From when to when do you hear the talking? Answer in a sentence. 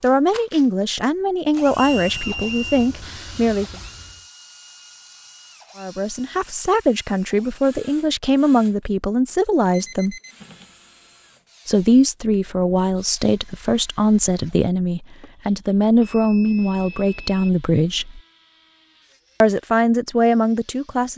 You can hear the talking from 0.0 to 3.7 s, from 5.8 to 10.2 s, from 11.7 to 18.2 s and from 19.4 to 21.1 s.